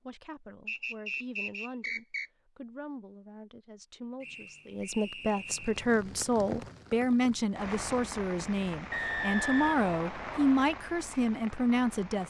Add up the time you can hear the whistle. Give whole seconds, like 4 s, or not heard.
5 s.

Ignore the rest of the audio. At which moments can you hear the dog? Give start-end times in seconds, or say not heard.
not heard.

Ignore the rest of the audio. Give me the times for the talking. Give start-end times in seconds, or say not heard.
0.0-12.2.